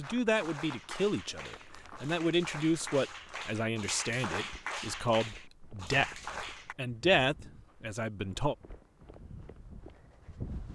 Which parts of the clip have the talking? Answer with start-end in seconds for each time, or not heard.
0.0-8.6.